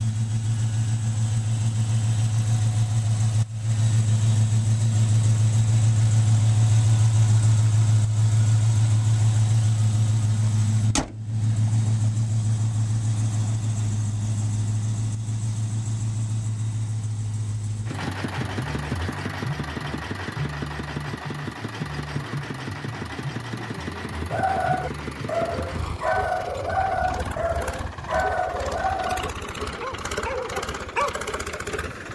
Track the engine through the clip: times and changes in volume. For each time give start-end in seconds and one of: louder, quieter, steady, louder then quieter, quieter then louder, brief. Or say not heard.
0.0-32.1 quieter.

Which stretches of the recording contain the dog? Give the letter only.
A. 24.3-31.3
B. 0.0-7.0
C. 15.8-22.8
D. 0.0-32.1
A.